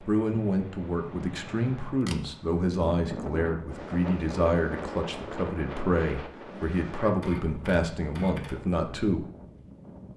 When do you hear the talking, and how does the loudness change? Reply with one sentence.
The talking can be heard from 0.0 to 9.2 s, at a steady volume.